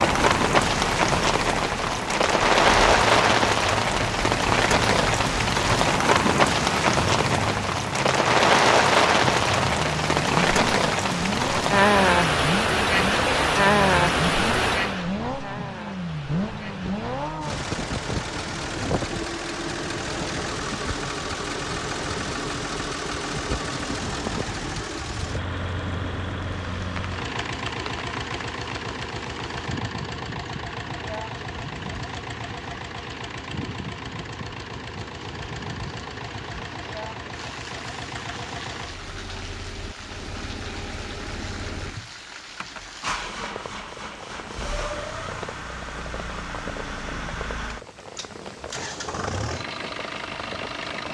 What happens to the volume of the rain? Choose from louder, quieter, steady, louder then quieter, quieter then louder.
quieter.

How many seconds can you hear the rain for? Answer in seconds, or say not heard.
51 s.